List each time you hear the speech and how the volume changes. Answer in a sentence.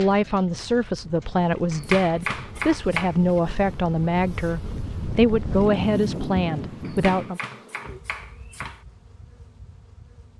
The speech can be heard from 0.0 to 7.4 s, at a steady volume.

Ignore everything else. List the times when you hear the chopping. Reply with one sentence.
The chopping can be heard from 1.7 to 3.1 s and from 6.8 to 8.8 s.